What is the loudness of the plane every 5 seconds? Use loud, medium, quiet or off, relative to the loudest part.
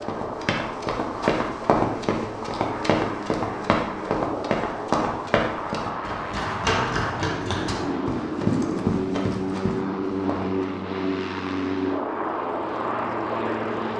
medium, loud, loud.